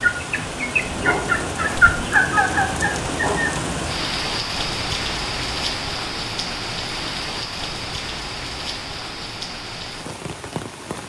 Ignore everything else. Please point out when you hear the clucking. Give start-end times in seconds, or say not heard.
0.0-3.5.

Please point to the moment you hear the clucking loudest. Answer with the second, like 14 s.
2 s.